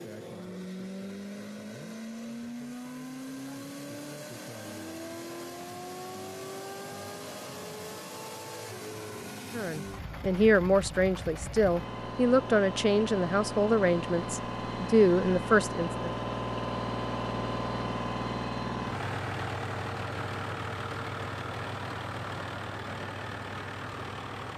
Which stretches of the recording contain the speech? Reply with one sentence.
The speech can be heard from 9.5 to 16.1 s.